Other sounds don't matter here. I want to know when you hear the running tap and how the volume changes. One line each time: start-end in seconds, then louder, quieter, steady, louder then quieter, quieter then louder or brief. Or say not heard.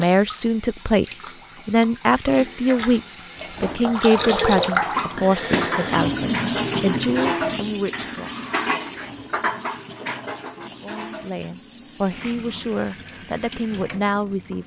0.0-14.6 louder then quieter.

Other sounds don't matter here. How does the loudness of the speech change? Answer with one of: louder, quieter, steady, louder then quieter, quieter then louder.
quieter.